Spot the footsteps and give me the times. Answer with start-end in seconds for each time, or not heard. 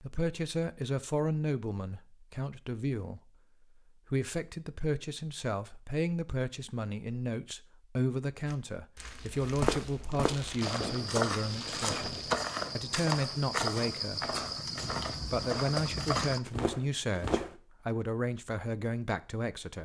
8.4-17.6.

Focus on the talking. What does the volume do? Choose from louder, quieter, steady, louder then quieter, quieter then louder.
steady.